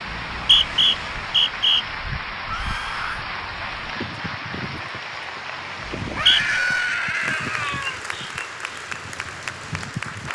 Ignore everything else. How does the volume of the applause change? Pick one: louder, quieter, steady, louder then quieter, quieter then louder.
steady.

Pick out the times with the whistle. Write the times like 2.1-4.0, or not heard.
0.1-1.9, 6.0-6.4.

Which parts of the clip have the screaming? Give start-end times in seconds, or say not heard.
2.5-3.2, 6.2-8.0.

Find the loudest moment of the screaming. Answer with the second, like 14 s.
7 s.